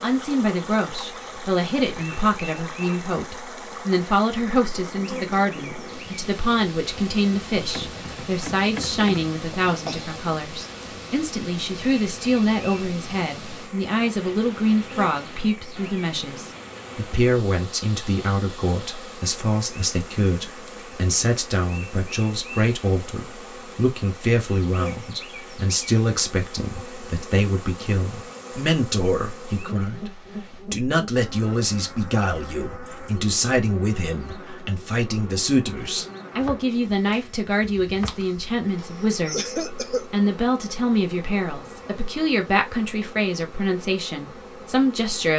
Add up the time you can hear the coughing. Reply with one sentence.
The coughing can be heard for 2 seconds in total.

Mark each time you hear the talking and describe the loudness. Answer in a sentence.
The talking can be heard from 0.0 to 45.3 s, at a steady volume.